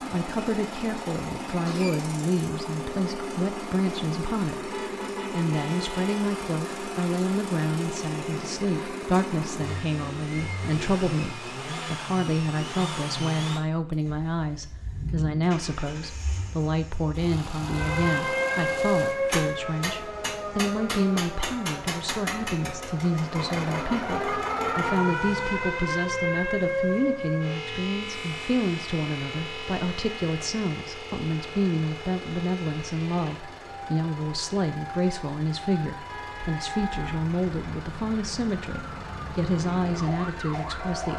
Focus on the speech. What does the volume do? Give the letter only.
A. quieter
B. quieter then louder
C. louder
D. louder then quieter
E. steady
E.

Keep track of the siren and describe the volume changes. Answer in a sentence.
The loudness of the siren goes down.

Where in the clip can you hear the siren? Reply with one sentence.
You can hear the siren from 17.6 to 41.1 s.